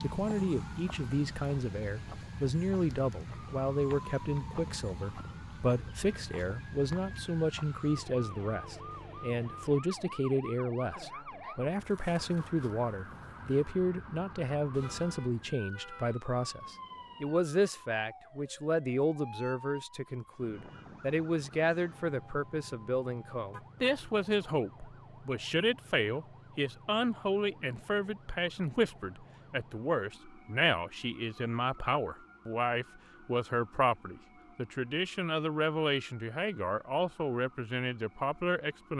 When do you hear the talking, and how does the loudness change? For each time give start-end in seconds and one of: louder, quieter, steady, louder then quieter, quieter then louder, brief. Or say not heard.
0.0-38.9 steady.